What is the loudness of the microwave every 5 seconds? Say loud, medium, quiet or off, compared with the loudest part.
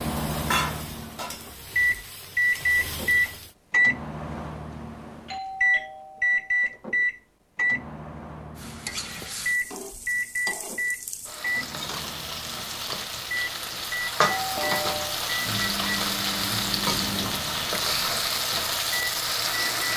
loud, loud, medium, medium.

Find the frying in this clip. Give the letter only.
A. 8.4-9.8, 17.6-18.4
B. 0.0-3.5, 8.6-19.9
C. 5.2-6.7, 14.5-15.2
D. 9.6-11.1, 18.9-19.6
B.